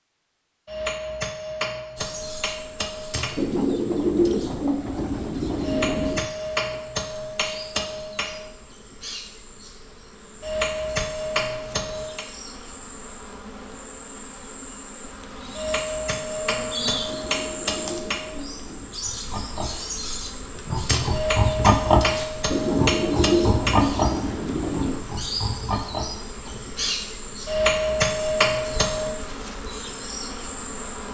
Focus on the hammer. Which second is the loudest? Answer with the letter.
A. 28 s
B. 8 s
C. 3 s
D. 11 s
A.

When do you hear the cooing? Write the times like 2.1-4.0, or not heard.
3.4-6.2, 17.1-18.9, 22.5-25.1.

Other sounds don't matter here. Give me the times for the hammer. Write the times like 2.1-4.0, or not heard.
0.7-3.4, 5.6-8.5, 10.4-12.2, 15.6-18.4, 21.1-23.9, 27.4-29.1.